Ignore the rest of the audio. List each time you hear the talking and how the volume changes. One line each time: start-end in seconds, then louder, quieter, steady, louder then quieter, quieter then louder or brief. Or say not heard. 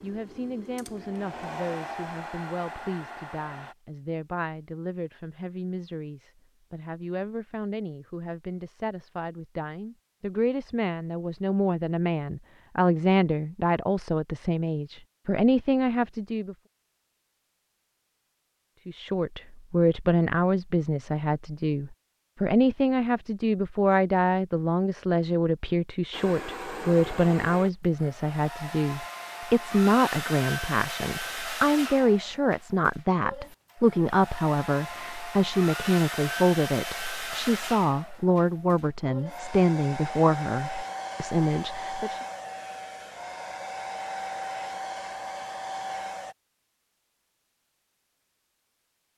0.0-16.6 louder
18.9-42.2 steady.